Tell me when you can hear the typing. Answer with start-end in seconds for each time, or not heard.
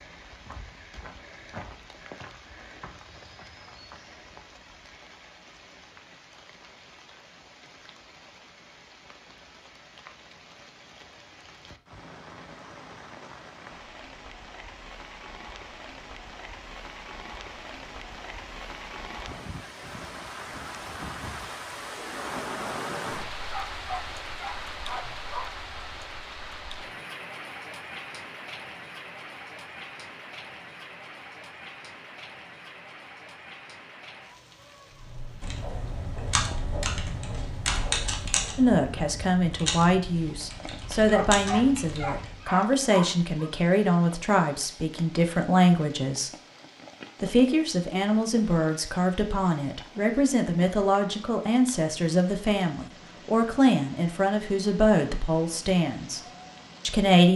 34.9-42.5.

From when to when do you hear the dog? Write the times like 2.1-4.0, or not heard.
23.5-25.5, 41.0-43.5.